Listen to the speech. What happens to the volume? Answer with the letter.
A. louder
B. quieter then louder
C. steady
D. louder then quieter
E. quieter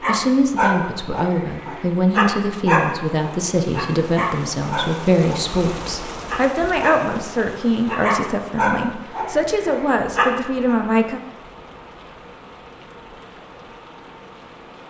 C.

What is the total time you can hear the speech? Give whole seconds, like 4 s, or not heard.
11 s.